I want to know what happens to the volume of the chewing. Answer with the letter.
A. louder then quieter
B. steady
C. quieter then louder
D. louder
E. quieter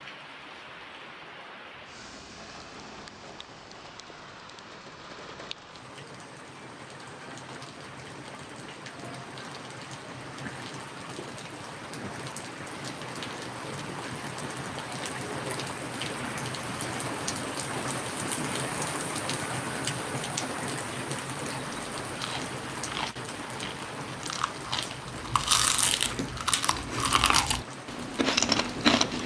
D.